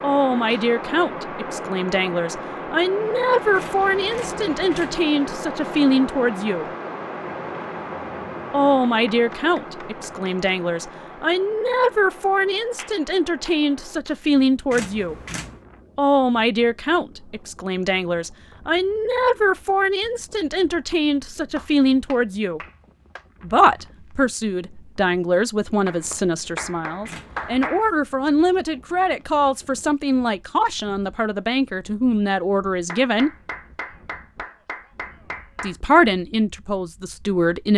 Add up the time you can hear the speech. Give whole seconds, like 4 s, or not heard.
32 s.